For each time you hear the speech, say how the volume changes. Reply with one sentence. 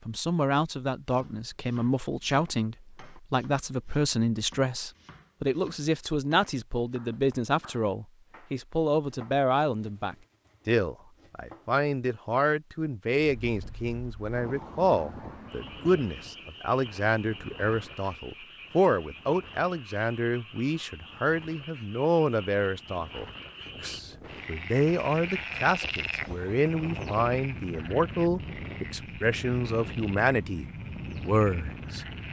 The speech can be heard from 0.1 to 32.0 s, at a steady volume.